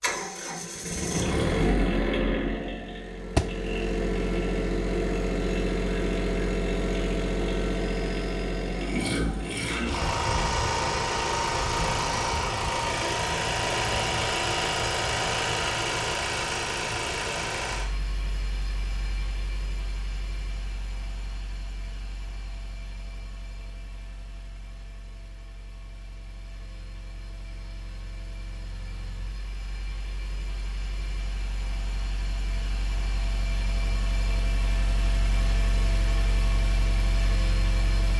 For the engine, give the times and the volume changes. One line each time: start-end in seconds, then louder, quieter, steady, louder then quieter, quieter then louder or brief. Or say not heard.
0.0-38.1 quieter then louder.